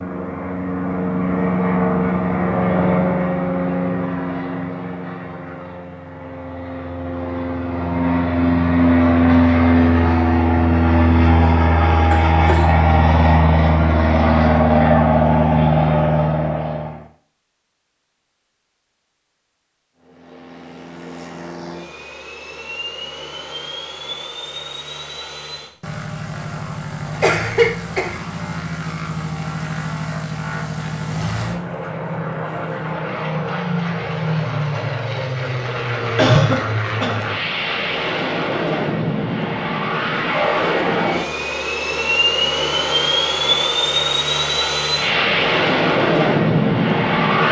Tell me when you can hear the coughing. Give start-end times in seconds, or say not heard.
12.1-12.7, 27.2-28.1, 36.1-37.2.